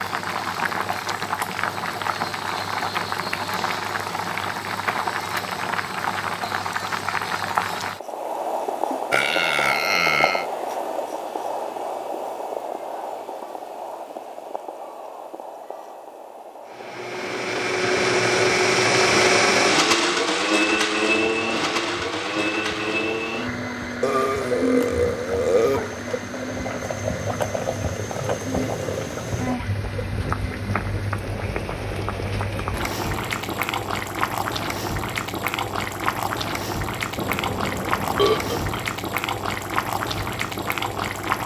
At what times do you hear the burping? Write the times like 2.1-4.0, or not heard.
9.1-10.4, 24.0-25.9, 37.1-38.8.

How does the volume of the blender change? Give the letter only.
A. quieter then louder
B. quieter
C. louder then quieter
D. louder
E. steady
B.